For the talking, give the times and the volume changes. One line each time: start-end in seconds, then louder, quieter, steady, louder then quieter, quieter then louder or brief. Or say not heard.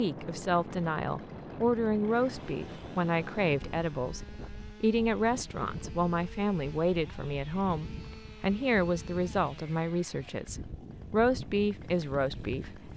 0.0-12.9 steady.